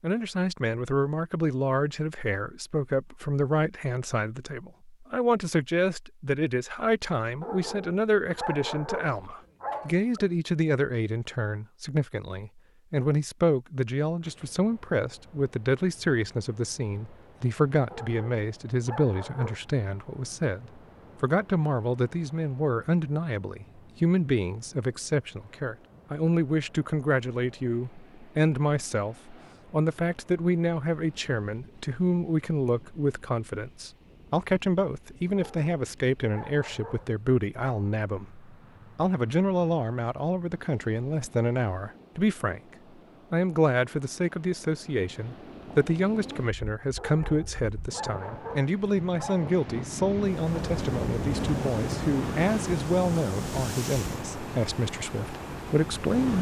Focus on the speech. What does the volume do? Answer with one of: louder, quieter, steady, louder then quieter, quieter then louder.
steady.